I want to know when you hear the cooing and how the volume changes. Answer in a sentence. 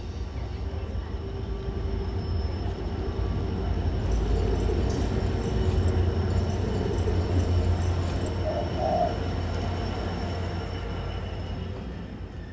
The cooing can be heard from 4.0 to 9.1 s, getting quieter then louder.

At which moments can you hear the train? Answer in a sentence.
You can hear the train from 0.0 to 12.4 s.